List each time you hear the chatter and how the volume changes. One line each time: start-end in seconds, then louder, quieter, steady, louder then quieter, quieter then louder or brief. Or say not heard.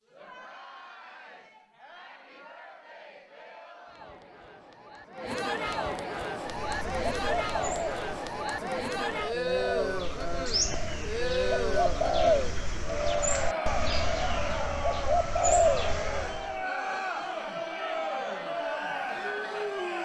0.0-20.0 louder.